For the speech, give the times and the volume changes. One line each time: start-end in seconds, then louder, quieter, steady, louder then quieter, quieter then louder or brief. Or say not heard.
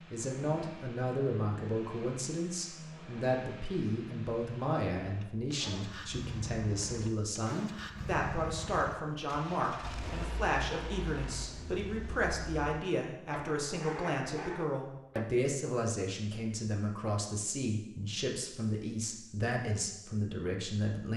0.1-21.1 steady.